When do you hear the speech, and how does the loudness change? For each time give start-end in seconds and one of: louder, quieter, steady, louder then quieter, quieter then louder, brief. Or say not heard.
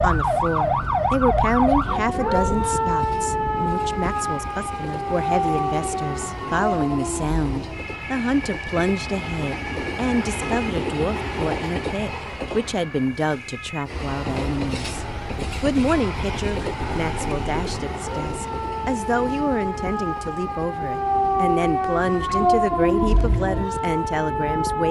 0.0-24.8 steady.